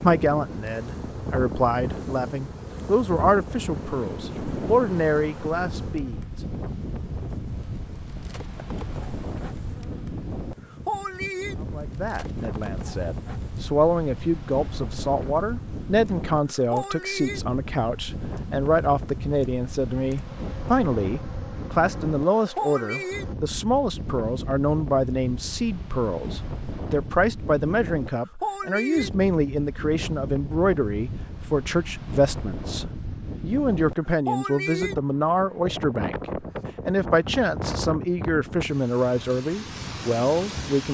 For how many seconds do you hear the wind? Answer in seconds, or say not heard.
41 s.